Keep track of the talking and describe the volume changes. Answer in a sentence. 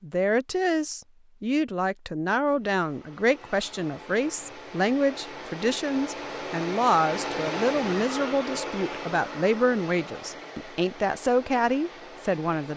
The volume of the talking stays about the same.